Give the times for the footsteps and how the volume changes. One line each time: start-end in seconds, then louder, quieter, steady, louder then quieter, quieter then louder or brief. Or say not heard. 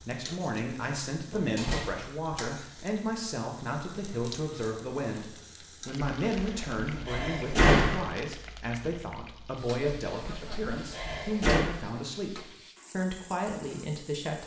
not heard.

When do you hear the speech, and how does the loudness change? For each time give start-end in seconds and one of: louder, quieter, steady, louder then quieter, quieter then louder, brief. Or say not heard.
0.0-14.4 steady.